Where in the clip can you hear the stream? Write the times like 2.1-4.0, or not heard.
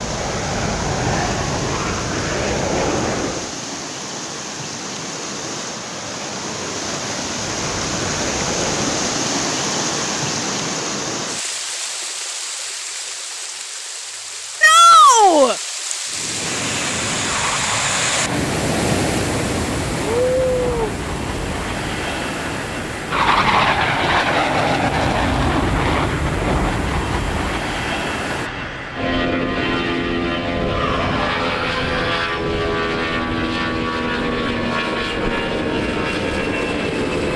0.0-28.5.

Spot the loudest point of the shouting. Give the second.
15 s.